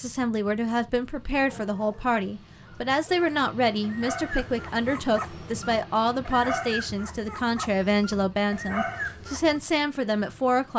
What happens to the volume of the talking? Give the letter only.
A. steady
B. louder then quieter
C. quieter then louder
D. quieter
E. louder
A.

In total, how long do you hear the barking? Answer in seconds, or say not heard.
8 s.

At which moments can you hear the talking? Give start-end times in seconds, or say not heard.
0.0-10.7.